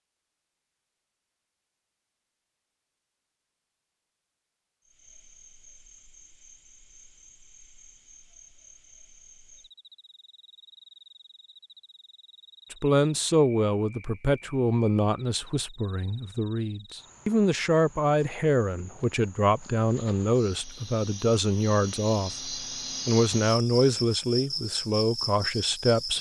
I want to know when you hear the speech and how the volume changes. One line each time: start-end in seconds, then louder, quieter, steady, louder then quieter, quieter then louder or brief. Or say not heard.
12.7-26.1 steady.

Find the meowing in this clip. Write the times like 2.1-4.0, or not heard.
not heard.